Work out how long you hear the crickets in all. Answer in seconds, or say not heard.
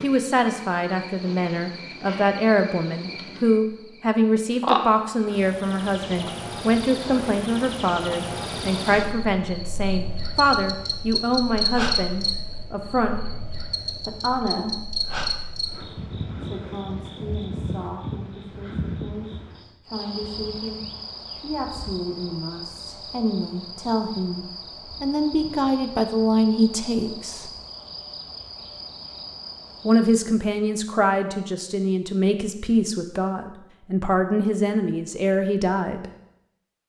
30 s.